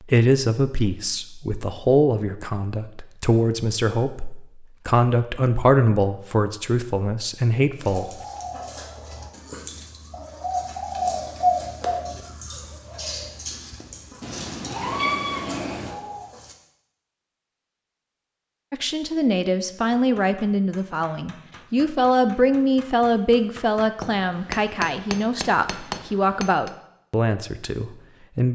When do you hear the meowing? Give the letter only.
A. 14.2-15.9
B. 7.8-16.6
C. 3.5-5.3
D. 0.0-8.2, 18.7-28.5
A.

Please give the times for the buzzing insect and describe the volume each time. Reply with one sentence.
The buzzing insect can't be heard in this clip.